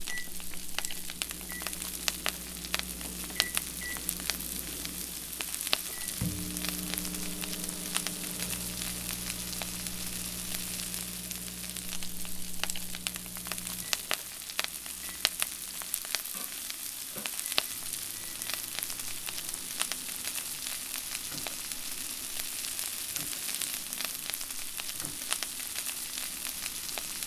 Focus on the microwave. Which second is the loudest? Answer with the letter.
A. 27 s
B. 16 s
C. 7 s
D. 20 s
C.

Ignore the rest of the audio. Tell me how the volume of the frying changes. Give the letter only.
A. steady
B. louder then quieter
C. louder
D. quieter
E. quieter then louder
A.